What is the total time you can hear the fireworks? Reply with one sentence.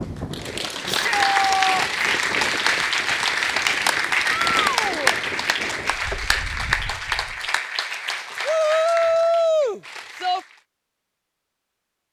The fireworks can't be heard in this clip.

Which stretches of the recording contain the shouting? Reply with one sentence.
The shouting can be heard from 0.8 to 1.9 s, from 4.5 to 5.2 s and from 8.4 to 10.4 s.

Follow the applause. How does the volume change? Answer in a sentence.
The volume of the applause goes down.